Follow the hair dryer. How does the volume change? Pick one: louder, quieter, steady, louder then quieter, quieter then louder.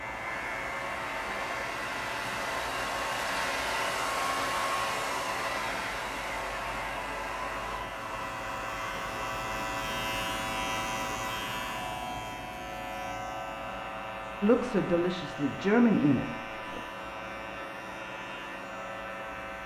quieter.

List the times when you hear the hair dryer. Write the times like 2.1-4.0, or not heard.
0.0-19.6.